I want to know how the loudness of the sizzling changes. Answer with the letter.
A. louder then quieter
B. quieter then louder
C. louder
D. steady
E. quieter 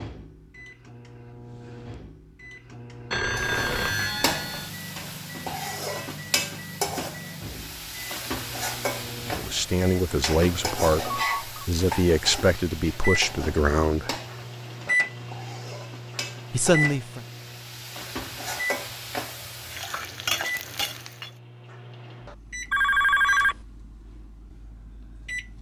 B.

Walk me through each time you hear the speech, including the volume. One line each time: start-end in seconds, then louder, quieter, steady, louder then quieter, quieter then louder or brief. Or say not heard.
9.3-14.2 steady
16.5-17.2 brief.